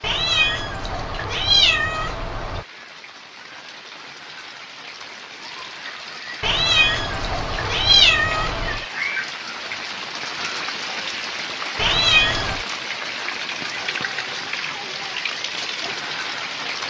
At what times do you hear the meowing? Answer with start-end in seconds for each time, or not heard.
0.0-2.6, 6.4-8.8, 11.8-12.7.